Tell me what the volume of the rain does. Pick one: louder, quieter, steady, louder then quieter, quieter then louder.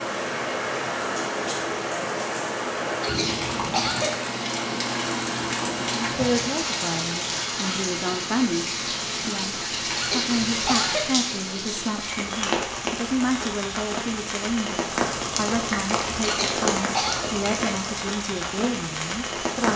steady.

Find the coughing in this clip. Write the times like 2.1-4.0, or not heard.
3.0-4.2, 9.9-11.2, 16.2-17.3.